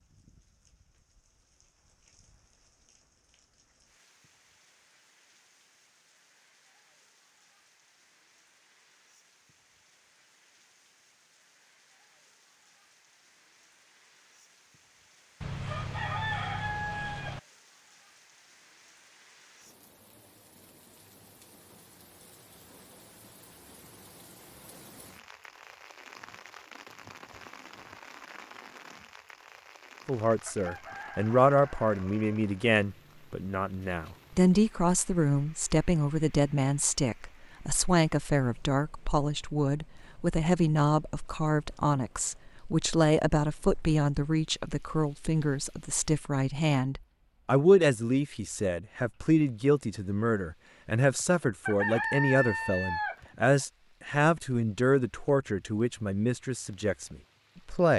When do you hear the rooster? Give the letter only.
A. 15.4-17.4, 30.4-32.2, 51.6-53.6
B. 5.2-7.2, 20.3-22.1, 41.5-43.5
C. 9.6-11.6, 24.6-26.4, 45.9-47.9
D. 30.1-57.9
A.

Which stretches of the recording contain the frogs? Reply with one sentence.
The frogs can't be heard in this clip.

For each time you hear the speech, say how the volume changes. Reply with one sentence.
The speech can be heard from 30.1 to 57.9 s, at a steady volume.